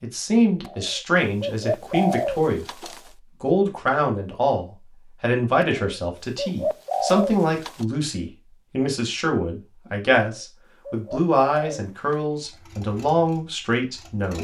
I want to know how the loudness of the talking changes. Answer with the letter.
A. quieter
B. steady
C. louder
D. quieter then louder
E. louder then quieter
B.